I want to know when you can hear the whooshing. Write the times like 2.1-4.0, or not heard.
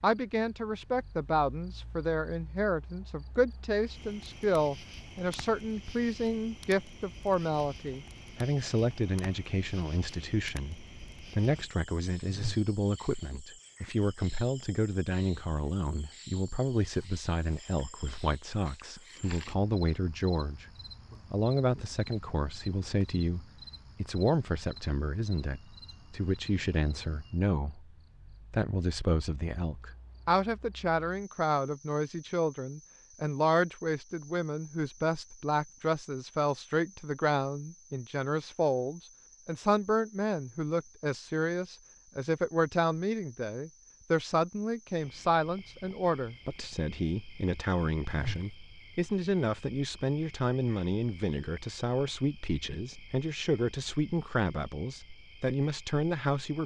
12.2-12.7, 48.0-48.5.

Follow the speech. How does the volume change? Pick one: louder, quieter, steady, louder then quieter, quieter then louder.
steady.